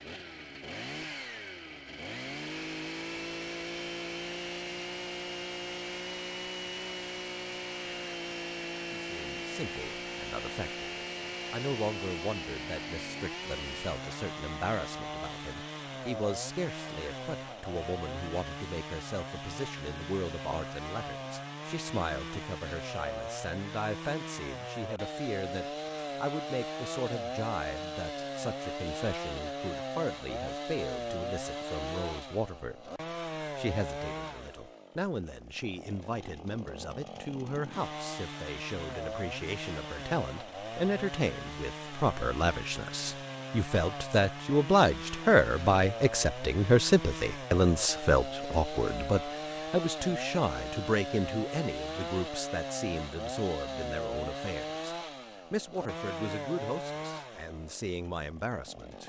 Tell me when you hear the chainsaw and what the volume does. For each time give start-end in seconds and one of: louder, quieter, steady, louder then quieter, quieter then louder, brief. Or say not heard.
0.0-59.0 steady.